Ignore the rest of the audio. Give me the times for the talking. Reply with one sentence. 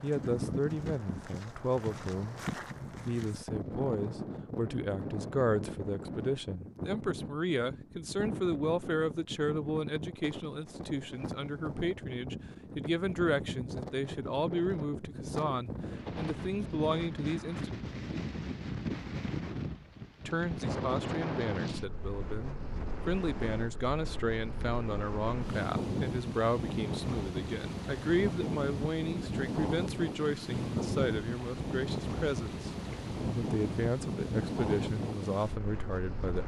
The talking can be heard from 0.0 to 17.7 s and from 20.2 to 36.4 s.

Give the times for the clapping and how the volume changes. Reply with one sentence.
The clapping can't be heard in this clip.